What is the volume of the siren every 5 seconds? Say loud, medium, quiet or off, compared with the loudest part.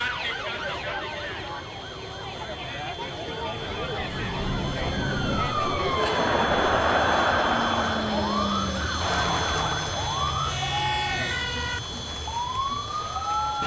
medium, loud, loud.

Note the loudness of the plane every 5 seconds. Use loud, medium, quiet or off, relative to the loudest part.
medium, loud, loud.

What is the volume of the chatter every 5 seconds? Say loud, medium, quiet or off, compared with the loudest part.
medium, loud, medium.